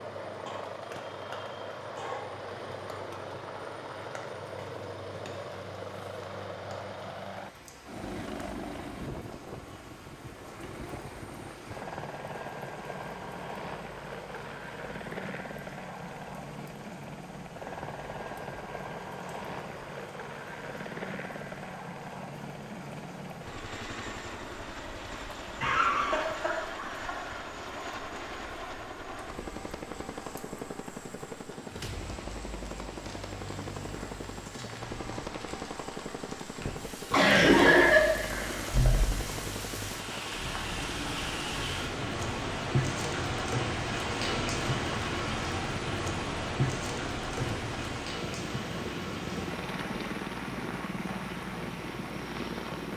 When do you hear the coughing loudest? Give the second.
38 s.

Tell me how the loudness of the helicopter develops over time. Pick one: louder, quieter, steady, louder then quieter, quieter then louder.
steady.